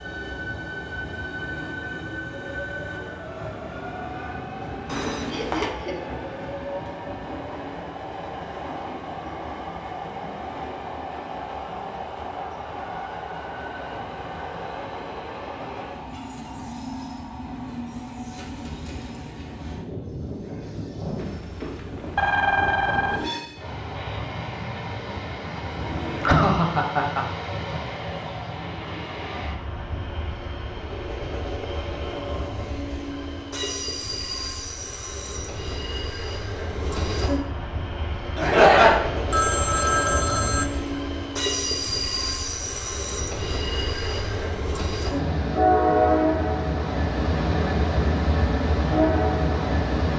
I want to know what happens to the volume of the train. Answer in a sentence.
The volume of the train goes up.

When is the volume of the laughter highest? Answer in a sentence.
The loudest moment of the laughter is at 39 seconds.